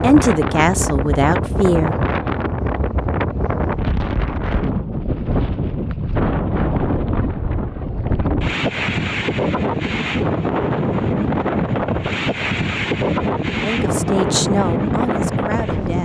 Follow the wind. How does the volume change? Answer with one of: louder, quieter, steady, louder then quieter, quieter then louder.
steady.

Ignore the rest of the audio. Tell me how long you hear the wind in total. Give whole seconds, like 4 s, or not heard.
16 s.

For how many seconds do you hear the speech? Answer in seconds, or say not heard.
4 s.